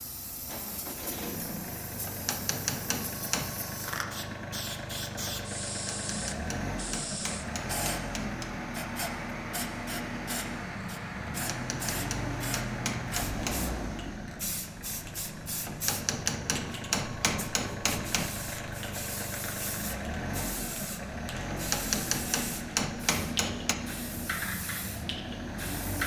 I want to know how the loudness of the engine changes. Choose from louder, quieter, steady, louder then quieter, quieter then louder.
steady.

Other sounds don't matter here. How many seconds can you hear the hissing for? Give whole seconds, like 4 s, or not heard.
26 s.